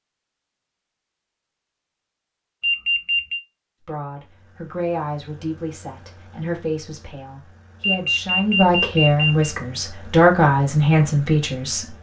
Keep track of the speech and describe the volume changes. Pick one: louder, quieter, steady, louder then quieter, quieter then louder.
louder.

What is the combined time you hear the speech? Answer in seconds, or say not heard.
8 s.